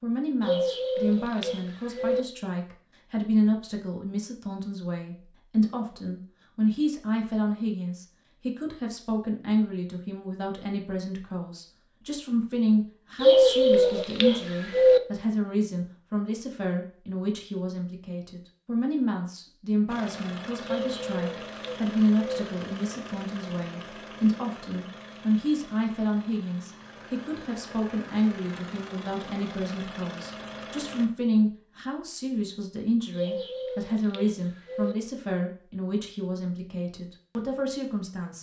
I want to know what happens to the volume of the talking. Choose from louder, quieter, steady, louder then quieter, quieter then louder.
steady.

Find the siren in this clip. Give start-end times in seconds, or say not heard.
not heard.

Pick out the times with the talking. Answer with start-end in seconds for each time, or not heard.
0.0-38.3.